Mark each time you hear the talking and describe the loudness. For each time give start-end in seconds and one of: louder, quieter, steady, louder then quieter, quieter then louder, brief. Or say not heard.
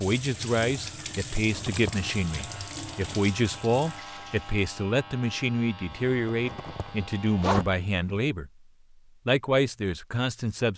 0.0-8.5 steady
9.2-10.7 brief.